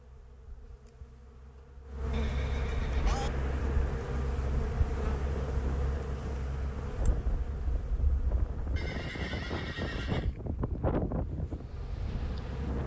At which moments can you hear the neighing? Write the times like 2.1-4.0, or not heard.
2.1-3.3, 8.8-10.3.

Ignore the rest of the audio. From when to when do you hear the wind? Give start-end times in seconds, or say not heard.
2.8-12.8.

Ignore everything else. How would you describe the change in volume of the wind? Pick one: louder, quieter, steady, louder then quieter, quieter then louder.
louder.